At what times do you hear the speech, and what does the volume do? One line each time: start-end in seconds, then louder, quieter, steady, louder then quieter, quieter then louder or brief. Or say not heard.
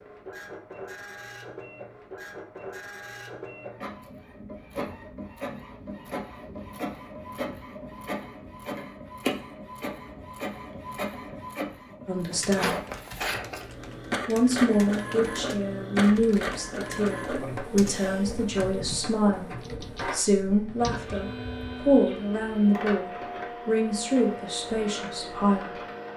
12.1-12.8 brief
14.2-25.8 steady.